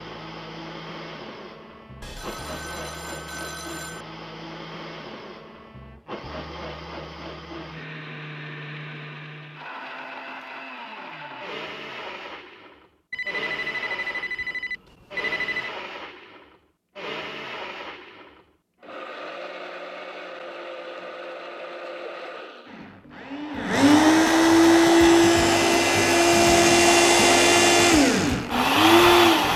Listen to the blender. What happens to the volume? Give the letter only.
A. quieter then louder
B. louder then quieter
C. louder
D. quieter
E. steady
C.